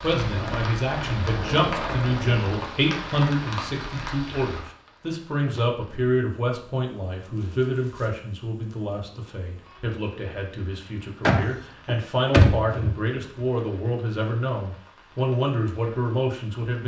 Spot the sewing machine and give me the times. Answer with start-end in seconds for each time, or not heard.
0.2-2.7.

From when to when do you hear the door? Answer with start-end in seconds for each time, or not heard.
11.2-12.9.